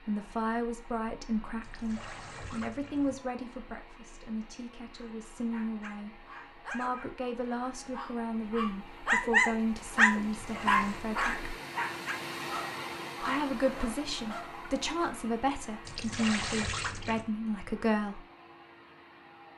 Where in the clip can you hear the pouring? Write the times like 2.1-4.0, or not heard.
1.6-3.1, 10.2-11.1, 15.8-17.2.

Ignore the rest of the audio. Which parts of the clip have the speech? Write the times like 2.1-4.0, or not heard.
0.1-11.5, 13.2-18.2.